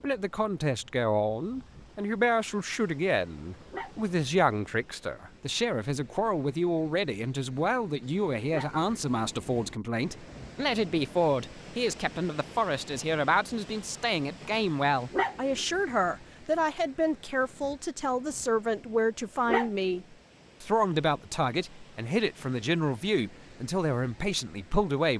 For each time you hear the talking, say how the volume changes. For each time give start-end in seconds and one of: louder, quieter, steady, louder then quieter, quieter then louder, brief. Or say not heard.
0.0-25.1 steady.